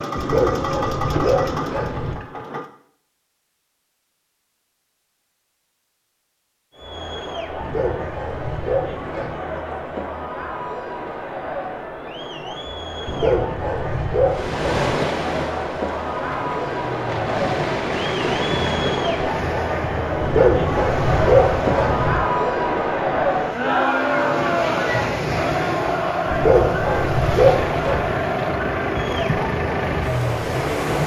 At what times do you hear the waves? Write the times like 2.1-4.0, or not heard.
14.2-31.0.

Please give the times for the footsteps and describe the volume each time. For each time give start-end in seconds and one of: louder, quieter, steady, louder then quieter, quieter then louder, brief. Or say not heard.
not heard.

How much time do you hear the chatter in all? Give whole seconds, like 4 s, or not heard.
24 s.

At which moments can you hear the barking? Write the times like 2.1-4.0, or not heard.
0.1-2.1, 7.5-9.4, 13.1-14.9, 20.2-22.2, 26.3-28.1.